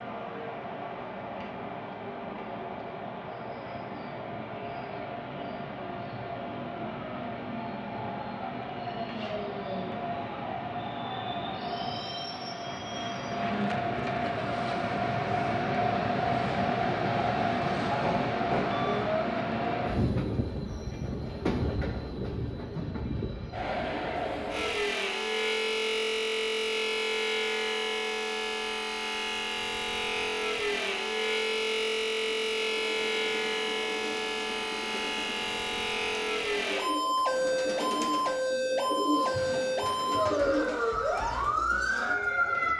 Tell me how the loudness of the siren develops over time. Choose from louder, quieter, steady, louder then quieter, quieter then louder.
steady.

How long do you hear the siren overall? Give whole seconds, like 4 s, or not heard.
18 s.